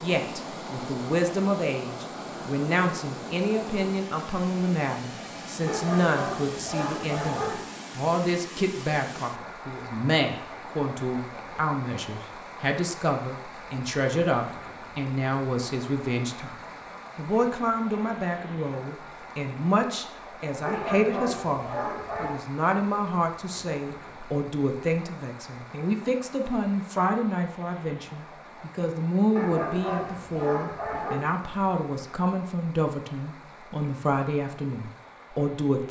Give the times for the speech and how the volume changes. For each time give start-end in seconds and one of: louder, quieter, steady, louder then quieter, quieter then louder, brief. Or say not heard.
0.0-35.8 steady.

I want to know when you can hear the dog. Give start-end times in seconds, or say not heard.
5.7-7.7, 20.6-22.4, 29.4-31.2.